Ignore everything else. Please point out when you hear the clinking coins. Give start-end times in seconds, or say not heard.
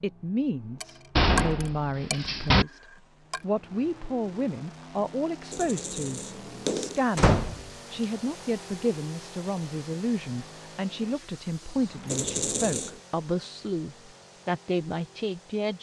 0.8-3.5, 5.5-7.0, 12.1-13.0.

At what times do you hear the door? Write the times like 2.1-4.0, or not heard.
1.1-2.6, 7.2-7.7, 11.8-12.2.